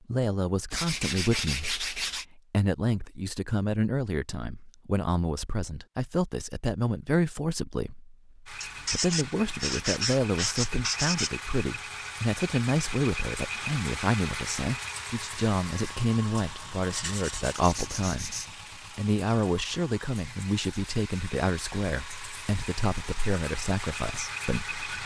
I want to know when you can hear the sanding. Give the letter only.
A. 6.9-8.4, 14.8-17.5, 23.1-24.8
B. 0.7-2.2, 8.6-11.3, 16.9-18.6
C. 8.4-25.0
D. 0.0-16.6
B.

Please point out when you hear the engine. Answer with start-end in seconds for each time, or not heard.
8.4-25.0.